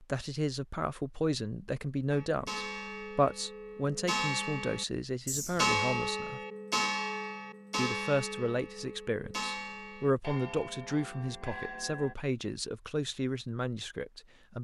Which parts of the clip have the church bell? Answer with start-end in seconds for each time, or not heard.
2.1-12.2.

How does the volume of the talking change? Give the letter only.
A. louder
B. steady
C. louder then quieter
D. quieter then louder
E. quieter
B.